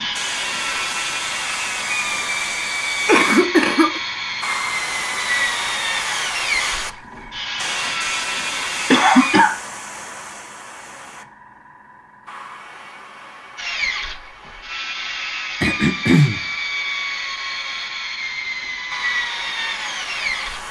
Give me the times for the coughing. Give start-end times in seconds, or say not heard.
3.0-4.0, 8.9-9.6, 15.6-16.4.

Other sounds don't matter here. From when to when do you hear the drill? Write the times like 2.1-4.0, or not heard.
0.0-9.4, 13.6-20.6.